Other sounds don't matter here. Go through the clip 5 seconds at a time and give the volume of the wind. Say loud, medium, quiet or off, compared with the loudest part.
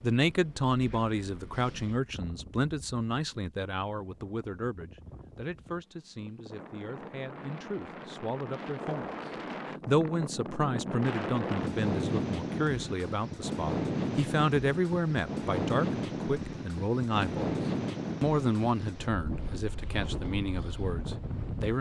quiet, medium, loud, loud, medium.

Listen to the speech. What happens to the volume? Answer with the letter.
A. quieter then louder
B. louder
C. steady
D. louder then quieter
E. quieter
A.